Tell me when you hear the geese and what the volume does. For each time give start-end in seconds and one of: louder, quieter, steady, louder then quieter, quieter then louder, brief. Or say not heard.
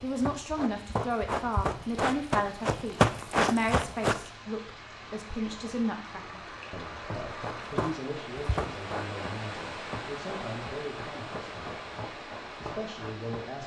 not heard.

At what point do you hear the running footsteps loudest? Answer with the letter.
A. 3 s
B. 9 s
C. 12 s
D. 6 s
A.